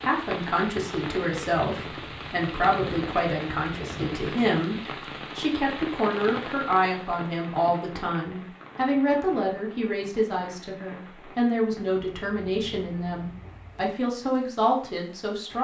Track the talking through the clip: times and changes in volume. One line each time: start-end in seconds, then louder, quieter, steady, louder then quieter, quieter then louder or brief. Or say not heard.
0.0-15.5 steady.